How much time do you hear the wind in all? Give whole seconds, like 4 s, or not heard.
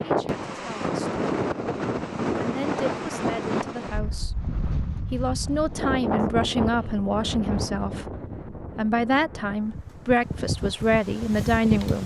12 s.